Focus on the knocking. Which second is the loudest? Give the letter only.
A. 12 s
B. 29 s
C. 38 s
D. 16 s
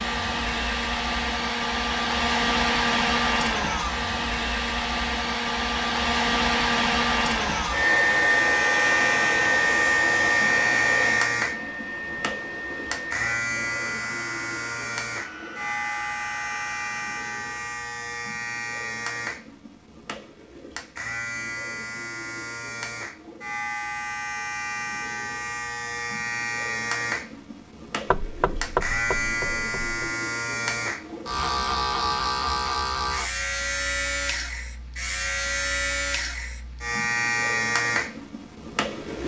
B.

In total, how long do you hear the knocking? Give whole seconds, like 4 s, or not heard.
2 s.